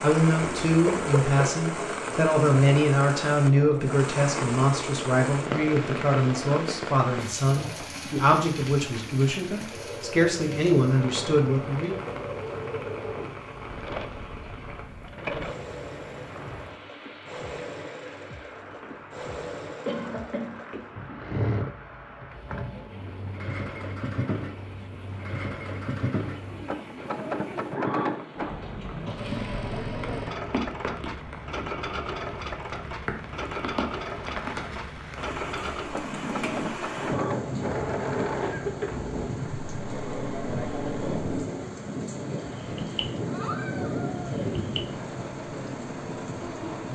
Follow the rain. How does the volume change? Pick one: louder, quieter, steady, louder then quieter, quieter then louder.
quieter then louder.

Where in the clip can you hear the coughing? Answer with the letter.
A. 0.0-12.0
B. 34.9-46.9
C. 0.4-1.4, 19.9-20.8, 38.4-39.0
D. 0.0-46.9
C.